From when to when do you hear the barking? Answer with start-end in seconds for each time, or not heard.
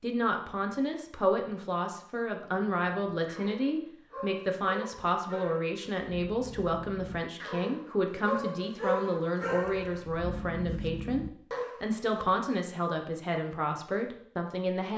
2.4-12.2.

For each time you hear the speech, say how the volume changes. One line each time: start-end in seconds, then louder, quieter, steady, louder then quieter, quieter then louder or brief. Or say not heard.
0.0-14.9 steady.